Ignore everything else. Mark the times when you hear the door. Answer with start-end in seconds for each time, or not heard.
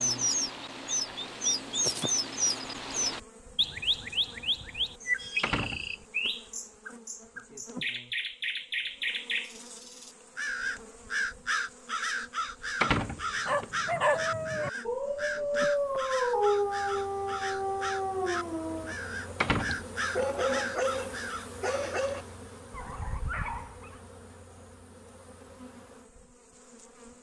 5.4-6.3, 12.8-13.7, 19.4-20.2.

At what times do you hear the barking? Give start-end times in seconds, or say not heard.
13.4-24.0.